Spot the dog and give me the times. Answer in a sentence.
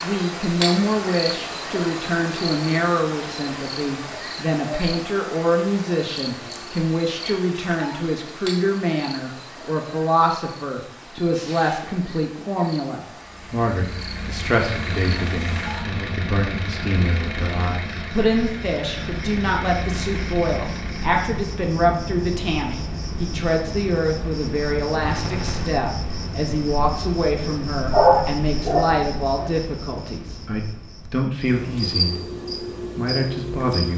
The dog can be heard from 27.9 to 29.5 s.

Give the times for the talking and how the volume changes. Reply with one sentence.
You can hear the talking from 0.0 to 32.4 s, at a steady volume; and briefly from 33.0 to 33.9 s.